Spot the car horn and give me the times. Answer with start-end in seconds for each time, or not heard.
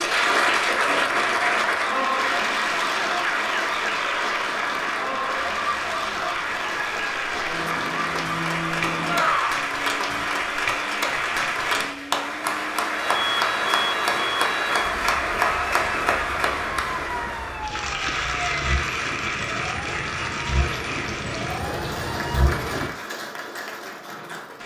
not heard.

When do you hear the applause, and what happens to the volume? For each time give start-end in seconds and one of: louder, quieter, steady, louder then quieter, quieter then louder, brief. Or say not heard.
0.0-24.6 quieter.